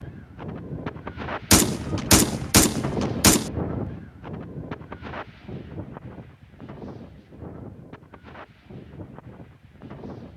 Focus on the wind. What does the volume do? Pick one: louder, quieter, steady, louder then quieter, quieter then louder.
quieter.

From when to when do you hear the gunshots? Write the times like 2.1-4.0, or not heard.
1.5-3.5.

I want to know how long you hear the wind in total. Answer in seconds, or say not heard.
10 s.